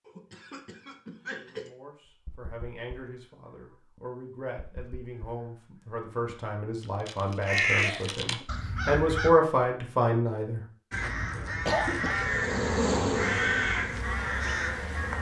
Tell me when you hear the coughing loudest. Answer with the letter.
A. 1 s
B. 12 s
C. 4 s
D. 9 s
B.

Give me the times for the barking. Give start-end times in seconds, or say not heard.
not heard.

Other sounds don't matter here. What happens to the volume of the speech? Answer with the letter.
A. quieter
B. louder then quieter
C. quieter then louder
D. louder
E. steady
D.